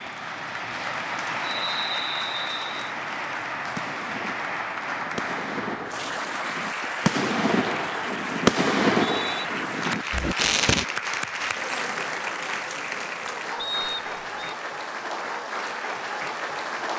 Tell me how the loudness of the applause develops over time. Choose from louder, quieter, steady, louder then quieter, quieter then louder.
steady.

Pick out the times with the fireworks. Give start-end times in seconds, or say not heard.
2.5-10.8.